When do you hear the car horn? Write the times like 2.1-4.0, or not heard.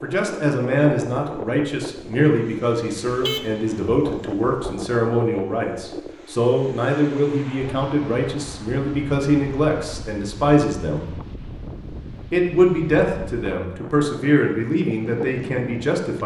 3.0-4.8.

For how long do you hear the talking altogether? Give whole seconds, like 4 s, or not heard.
15 s.